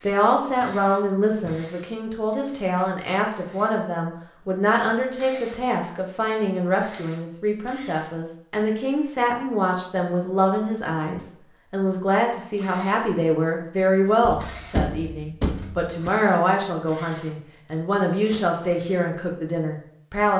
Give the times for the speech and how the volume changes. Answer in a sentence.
The speech can be heard from 0.0 to 20.3 s, at a steady volume.